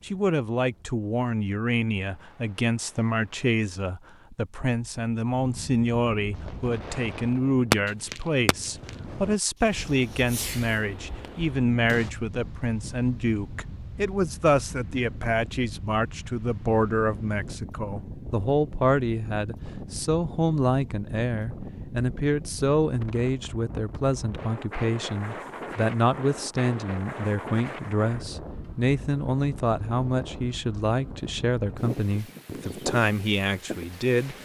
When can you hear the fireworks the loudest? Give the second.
8 s.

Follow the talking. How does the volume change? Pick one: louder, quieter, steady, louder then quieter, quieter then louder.
steady.